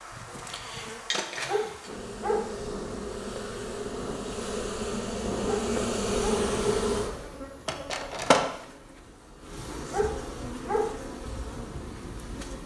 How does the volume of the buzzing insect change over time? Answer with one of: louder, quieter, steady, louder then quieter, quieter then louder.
louder then quieter.